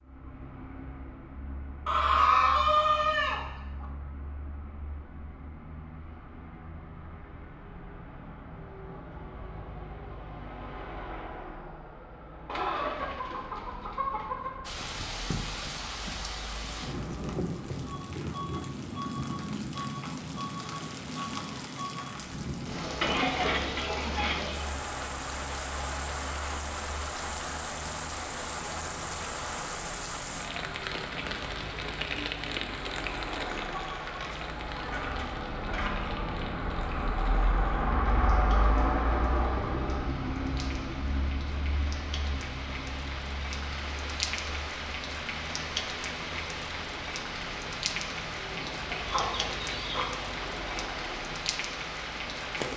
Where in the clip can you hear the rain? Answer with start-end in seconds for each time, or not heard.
14.7-52.7.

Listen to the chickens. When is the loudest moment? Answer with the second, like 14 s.
2 s.